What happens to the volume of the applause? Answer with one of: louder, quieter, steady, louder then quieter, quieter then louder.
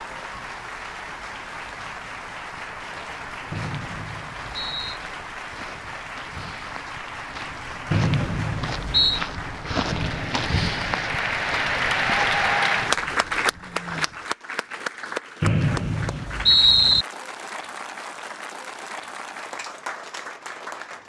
louder then quieter.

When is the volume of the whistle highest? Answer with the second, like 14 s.
17 s.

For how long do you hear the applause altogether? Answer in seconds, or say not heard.
21 s.